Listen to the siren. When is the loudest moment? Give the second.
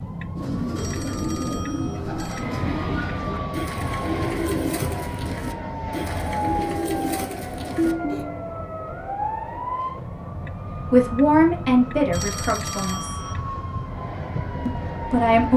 8 s.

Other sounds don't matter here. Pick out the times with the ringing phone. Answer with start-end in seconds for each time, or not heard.
0.8-2.5, 12.1-13.4.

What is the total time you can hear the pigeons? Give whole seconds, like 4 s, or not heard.
8 s.